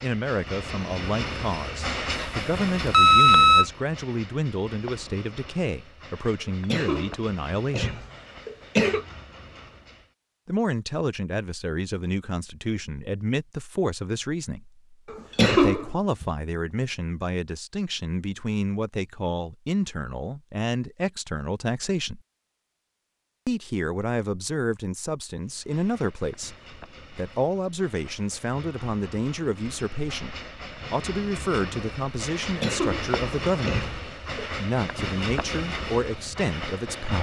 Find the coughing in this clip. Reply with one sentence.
The coughing can be heard from 6.7 to 9.1 s, from 15.1 to 16.3 s and from 32.4 to 34.5 s.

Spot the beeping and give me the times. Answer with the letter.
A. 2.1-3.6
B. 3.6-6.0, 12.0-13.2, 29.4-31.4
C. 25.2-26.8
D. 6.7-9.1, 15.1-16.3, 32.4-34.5
A.